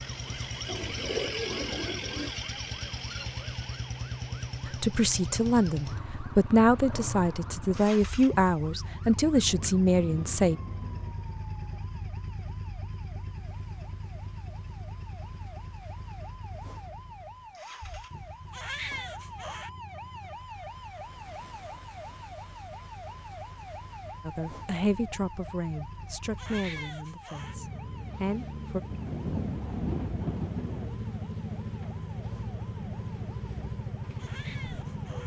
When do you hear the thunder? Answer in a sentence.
The thunder can be heard from 9.2 to 11.2 s and from 28.9 to 30.9 s.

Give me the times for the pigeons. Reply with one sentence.
The pigeons can be heard from 0.7 to 2.3 s.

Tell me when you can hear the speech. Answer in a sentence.
You can hear the speech from 4.7 to 10.6 s and from 24.2 to 28.8 s.